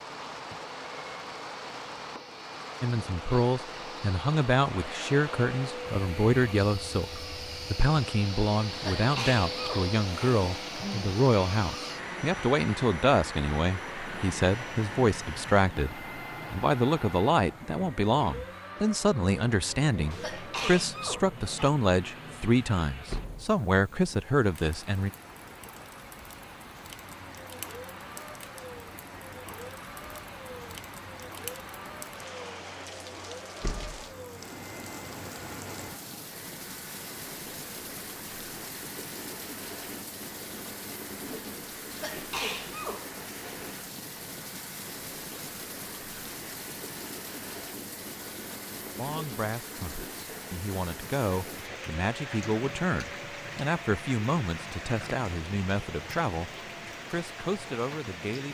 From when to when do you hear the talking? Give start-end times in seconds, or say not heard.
2.8-25.1, 49.0-56.5, 57.1-58.4.